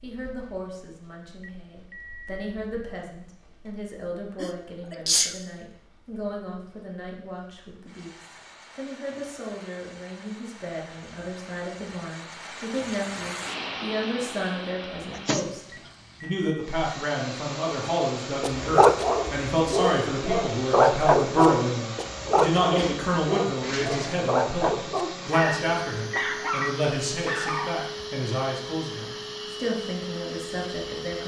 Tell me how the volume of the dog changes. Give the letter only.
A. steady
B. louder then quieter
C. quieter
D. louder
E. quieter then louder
C.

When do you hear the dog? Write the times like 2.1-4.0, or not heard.
18.4-27.8.